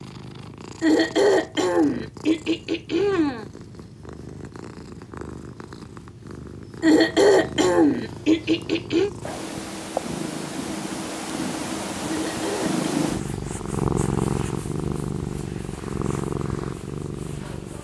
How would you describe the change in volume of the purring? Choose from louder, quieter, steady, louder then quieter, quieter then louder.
louder.